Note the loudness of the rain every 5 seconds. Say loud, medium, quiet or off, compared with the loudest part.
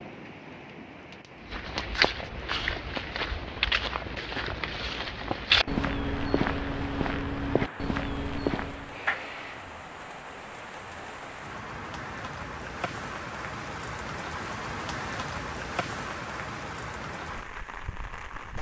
medium, medium, loud, loud.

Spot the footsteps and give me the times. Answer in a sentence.
The footsteps can be heard from 1.4 to 9.0 s.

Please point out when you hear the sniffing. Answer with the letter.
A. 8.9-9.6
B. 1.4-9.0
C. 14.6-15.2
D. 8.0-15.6
A.